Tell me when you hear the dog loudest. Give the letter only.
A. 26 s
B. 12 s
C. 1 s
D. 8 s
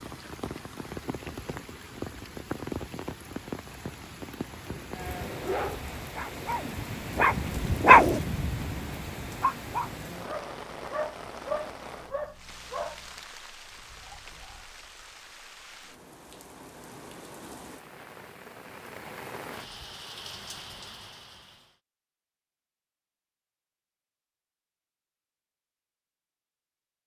D.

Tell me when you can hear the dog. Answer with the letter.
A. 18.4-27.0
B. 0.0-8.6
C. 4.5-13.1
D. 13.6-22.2
C.